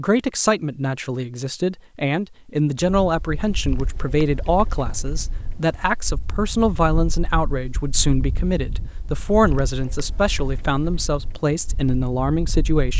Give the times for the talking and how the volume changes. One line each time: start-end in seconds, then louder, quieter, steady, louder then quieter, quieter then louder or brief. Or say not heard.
0.0-12.9 steady.